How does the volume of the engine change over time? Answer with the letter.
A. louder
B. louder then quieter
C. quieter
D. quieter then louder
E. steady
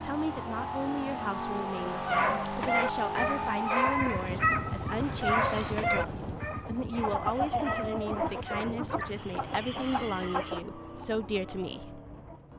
C.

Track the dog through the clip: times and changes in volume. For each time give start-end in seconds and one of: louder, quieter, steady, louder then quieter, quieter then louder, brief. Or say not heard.
1.9-8.7 quieter.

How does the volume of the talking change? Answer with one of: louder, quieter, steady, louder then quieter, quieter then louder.
steady.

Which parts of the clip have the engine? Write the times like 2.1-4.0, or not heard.
0.0-12.5.